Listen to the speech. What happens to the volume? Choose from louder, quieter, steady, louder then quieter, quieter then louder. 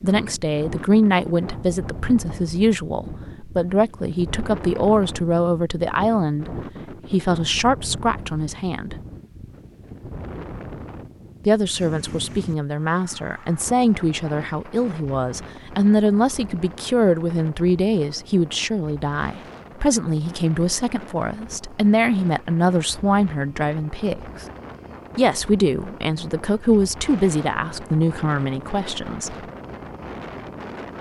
steady.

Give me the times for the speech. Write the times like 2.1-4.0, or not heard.
0.0-8.9, 11.4-24.4, 25.1-29.4.